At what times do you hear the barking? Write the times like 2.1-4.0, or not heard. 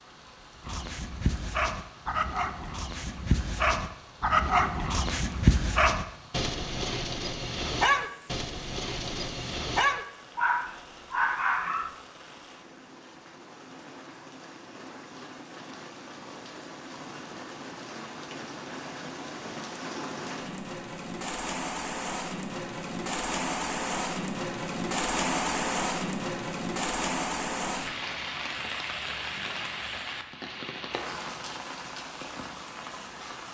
0.7-11.9.